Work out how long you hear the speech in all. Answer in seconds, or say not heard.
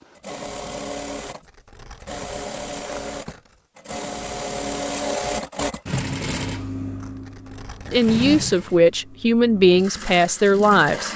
3 s.